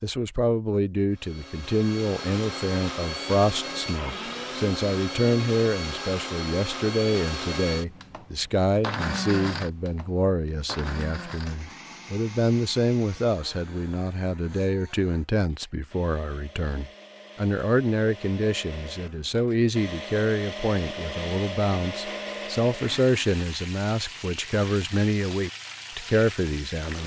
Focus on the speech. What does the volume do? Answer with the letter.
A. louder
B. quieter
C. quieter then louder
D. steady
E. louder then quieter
D.